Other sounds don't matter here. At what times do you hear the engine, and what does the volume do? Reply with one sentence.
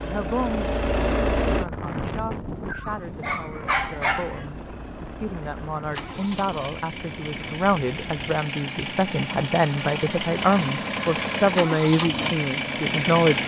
You can hear the engine briefly from 0.0 to 1.7 s; and from 3.5 to 13.4 s, getting louder.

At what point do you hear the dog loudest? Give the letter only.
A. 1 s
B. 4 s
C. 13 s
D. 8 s
B.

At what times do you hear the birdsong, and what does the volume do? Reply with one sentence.
The birdsong can't be heard in this clip.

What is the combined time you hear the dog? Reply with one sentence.
You can hear the dog for 2 seconds altogether.